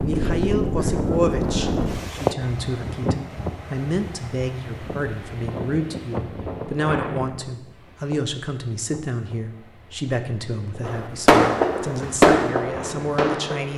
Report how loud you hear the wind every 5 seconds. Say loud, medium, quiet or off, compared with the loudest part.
loud, medium, quiet.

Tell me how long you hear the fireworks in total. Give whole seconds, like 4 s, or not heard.
3 s.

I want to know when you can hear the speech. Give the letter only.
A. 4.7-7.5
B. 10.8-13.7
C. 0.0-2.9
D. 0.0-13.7
D.